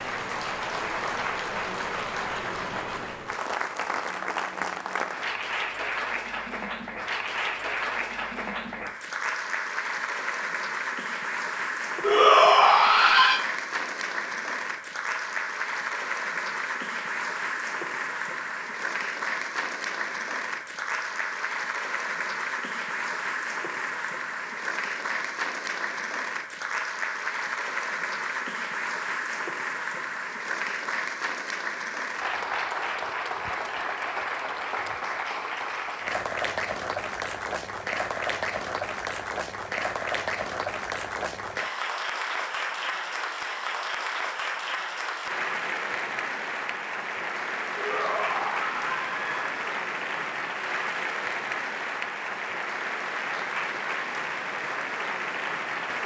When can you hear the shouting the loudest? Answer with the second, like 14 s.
12 s.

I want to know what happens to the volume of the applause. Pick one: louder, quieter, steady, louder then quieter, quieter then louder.
steady.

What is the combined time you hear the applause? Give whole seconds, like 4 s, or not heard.
56 s.